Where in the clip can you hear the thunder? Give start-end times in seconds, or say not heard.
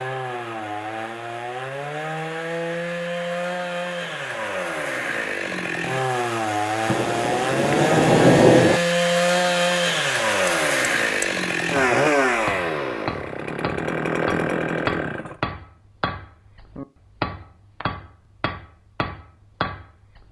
6.8-8.8.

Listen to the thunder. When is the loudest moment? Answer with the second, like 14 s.
8 s.